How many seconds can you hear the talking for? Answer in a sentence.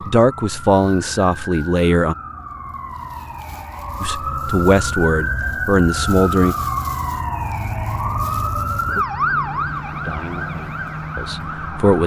The talking can be heard for 7 seconds in total.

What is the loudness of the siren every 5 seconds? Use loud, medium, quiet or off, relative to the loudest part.
medium, loud, medium.